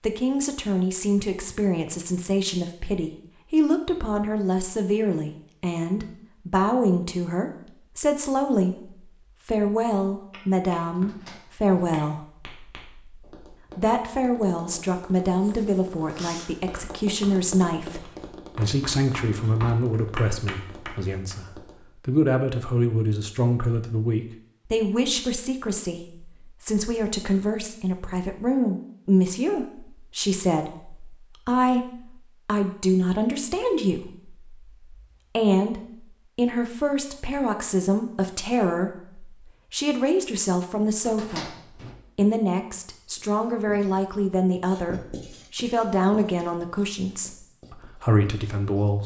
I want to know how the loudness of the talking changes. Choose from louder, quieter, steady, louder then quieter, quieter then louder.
steady.